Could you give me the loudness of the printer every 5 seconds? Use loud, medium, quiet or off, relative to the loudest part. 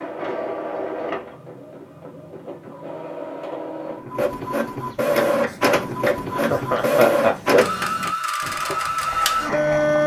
medium, loud.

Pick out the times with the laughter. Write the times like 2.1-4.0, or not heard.
6.3-7.8.